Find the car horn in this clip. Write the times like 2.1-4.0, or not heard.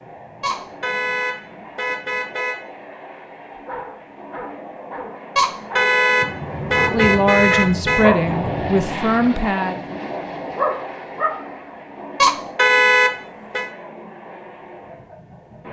0.4-2.5, 5.3-8.1, 12.2-13.7.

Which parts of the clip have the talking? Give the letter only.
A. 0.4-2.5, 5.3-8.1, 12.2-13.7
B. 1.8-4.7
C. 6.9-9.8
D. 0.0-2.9
C.